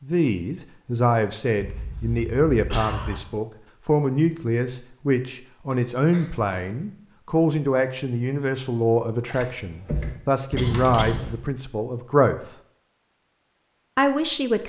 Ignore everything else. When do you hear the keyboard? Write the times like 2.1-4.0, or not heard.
9.6-11.4.